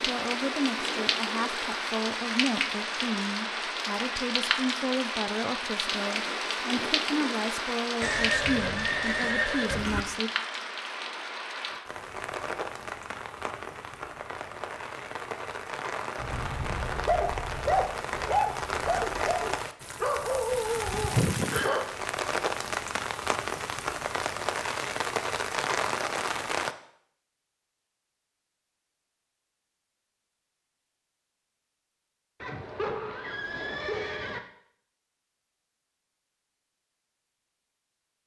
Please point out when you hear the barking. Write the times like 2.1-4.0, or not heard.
16.2-21.9.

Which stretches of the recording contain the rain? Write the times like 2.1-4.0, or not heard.
0.0-26.8.